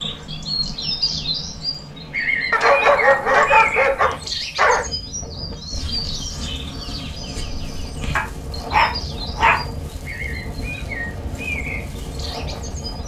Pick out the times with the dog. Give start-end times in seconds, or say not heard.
2.5-4.9, 8.2-9.7.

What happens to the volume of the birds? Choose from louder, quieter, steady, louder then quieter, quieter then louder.
quieter.